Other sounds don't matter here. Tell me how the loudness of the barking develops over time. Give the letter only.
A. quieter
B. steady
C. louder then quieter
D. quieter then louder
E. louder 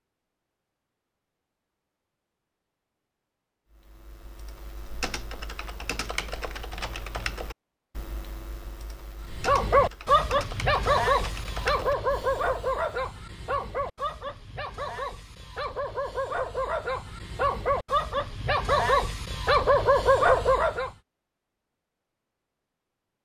D.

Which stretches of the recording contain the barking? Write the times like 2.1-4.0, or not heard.
9.3-20.9.